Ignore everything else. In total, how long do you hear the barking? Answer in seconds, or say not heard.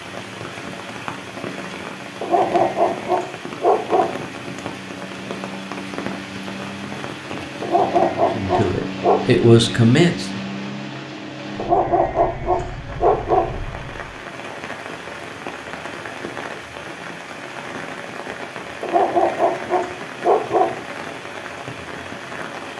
8 s.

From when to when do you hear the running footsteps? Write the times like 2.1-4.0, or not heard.
not heard.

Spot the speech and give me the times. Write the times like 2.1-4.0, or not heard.
8.3-10.4.